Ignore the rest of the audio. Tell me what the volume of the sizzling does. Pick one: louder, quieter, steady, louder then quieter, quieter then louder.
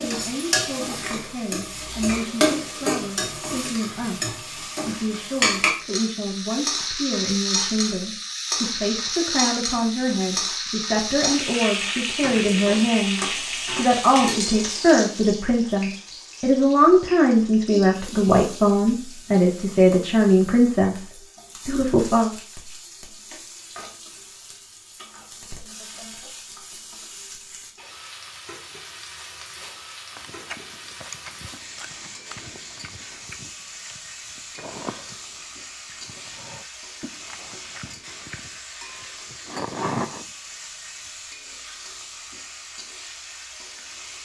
quieter.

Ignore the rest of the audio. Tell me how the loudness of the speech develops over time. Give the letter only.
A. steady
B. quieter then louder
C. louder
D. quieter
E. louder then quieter
C.